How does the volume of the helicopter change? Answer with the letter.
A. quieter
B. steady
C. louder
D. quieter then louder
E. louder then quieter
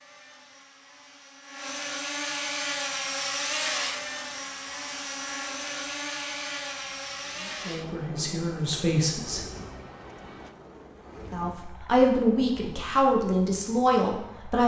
A.